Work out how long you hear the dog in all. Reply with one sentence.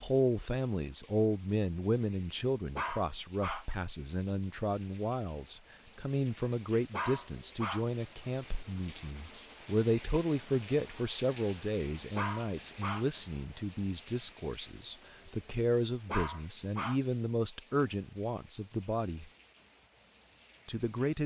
You can hear the dog for 4 seconds altogether.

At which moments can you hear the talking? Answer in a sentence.
You can hear the talking from 0.0 to 19.2 s and from 20.6 to 21.2 s.